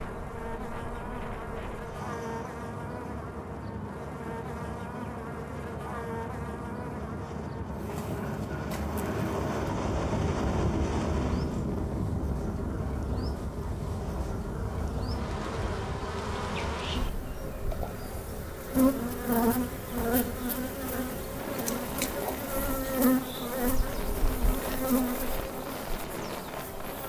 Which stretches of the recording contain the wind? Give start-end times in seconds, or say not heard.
0.0-27.0.